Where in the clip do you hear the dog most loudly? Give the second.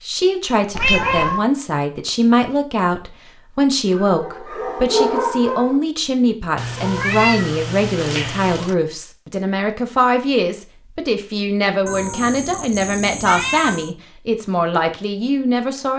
5 s.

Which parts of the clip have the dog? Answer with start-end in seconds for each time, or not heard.
3.8-5.8.